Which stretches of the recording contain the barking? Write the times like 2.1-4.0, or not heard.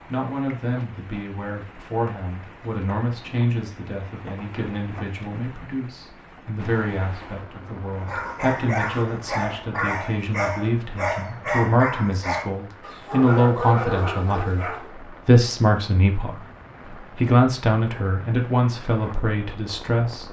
8.0-14.9.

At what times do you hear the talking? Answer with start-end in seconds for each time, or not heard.
0.1-20.2.